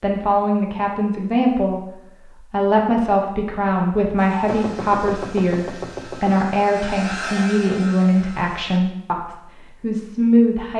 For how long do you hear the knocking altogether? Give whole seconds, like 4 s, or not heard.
2 s.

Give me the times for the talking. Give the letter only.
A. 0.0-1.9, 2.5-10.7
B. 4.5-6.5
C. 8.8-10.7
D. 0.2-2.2
A.